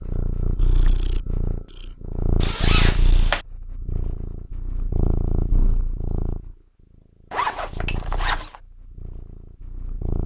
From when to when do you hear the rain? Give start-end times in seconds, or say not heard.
not heard.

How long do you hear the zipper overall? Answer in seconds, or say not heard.
2 s.